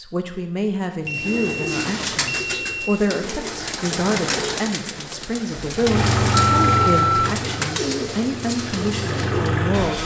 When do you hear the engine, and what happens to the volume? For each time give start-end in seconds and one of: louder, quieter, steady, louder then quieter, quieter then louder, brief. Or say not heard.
5.7-10.0 quieter then louder.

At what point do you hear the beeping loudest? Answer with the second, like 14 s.
7 s.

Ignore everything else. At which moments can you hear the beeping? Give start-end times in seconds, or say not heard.
1.1-3.0, 6.3-7.3.